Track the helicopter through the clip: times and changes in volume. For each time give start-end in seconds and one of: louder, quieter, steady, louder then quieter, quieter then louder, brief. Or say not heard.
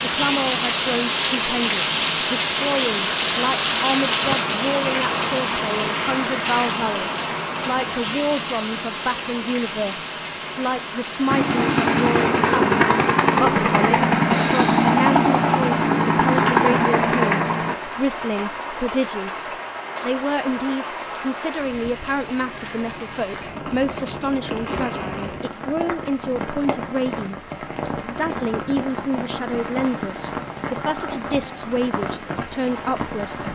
11.2-17.8 steady.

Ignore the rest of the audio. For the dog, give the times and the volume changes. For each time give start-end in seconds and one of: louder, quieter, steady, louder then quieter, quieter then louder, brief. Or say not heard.
not heard.